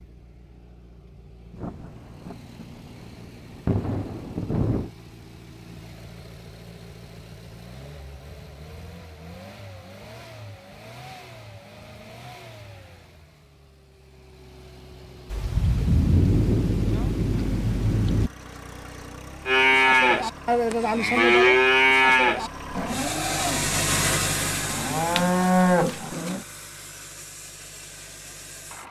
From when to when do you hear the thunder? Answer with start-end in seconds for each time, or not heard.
1.6-4.9, 15.3-18.3.